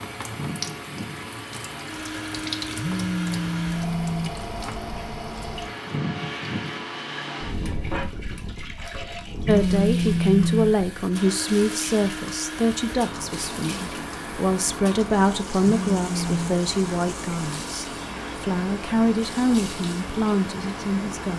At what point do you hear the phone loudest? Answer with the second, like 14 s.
10 s.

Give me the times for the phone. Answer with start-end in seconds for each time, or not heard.
2.8-4.3, 9.4-10.8, 15.6-16.6.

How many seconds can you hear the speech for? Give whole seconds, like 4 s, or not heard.
12 s.